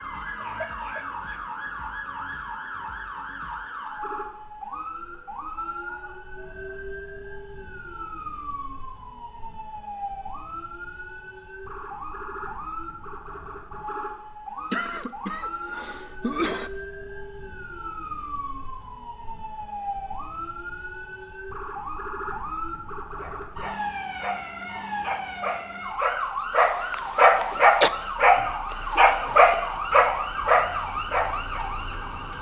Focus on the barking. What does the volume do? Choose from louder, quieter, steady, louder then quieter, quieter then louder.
louder.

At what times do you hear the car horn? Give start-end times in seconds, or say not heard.
not heard.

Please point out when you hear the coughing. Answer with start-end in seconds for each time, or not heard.
0.4-1.4, 14.7-16.7, 26.9-27.9.